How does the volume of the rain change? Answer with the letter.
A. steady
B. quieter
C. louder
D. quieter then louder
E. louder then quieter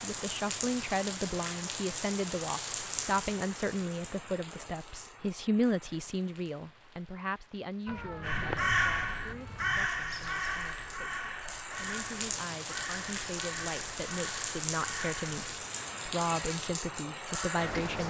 D.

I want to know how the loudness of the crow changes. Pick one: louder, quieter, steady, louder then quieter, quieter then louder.
quieter.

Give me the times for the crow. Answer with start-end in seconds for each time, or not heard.
8.2-17.9.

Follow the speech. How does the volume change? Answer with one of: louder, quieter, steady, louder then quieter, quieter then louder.
quieter then louder.